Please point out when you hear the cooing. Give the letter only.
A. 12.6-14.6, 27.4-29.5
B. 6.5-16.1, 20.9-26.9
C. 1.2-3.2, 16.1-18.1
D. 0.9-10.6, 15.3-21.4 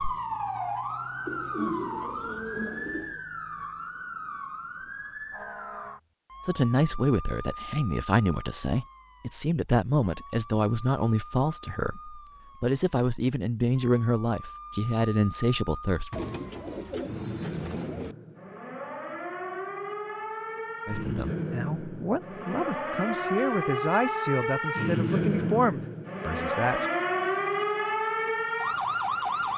C.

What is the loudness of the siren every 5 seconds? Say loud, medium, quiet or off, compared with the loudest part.
medium, quiet, quiet, medium, loud, loud.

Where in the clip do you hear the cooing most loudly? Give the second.
2 s.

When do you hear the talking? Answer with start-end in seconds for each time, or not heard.
6.5-16.1, 20.9-26.9.